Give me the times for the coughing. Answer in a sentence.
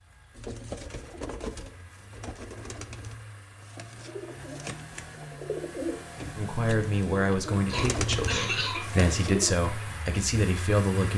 The coughing can be heard from 7.7 to 8.8 s.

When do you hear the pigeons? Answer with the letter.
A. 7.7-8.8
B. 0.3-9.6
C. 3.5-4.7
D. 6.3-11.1
B.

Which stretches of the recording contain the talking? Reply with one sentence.
The talking can be heard from 6.3 to 11.1 s.